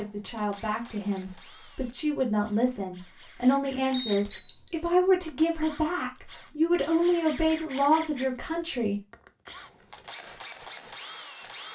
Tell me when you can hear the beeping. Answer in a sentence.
You can hear the beeping from 3.9 to 4.9 s.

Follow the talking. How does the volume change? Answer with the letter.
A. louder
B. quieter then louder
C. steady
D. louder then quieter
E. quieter
A.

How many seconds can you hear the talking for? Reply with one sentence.
The talking can be heard for 9 seconds in total.